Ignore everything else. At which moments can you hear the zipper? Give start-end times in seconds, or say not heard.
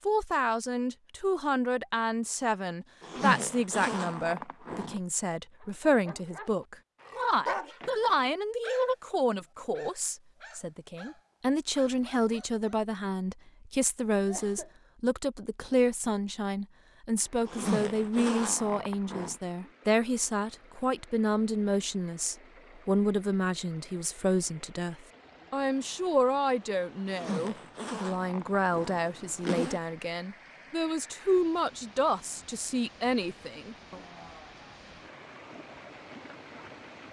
3.0-5.0, 17.4-19.4, 27.1-29.8.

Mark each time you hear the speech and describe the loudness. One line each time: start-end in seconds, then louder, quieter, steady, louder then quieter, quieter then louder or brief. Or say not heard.
0.1-34.0 steady.